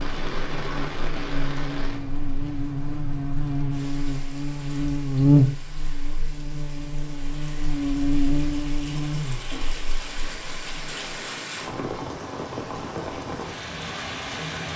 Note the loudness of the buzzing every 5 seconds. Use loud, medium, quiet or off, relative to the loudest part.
medium, loud, off.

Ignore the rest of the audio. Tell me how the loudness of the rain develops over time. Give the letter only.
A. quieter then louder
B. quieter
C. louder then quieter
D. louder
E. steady
A.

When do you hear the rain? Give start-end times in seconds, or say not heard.
0.0-14.7.